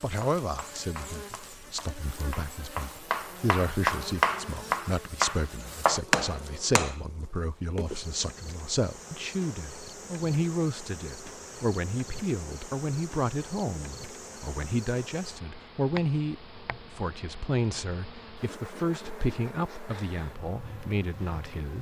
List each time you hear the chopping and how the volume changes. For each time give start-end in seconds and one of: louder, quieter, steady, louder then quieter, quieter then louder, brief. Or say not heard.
0.1-7.0 louder.